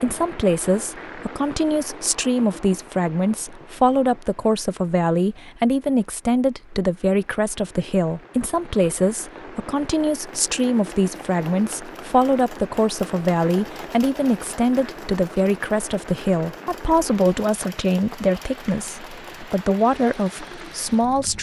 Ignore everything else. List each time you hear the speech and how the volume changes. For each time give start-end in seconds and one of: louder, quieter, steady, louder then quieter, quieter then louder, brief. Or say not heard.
0.0-21.3 steady.